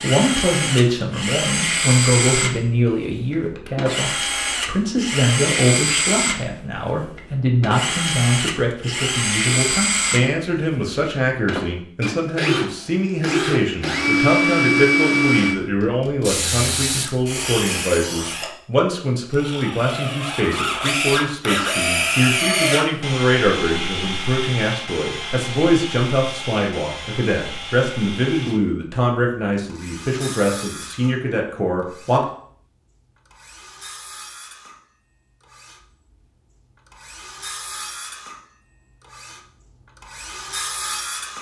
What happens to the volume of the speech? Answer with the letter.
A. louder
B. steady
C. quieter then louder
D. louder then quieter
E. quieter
B.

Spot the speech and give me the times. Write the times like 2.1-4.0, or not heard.
0.0-32.2.